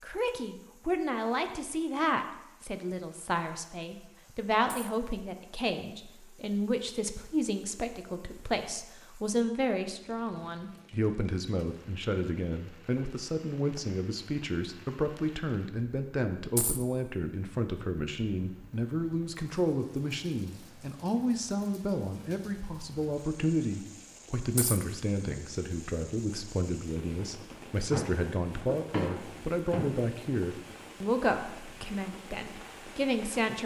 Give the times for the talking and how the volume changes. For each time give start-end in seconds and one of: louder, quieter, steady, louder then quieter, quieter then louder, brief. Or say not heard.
0.0-33.6 steady.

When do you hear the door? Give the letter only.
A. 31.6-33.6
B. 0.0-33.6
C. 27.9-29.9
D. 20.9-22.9
C.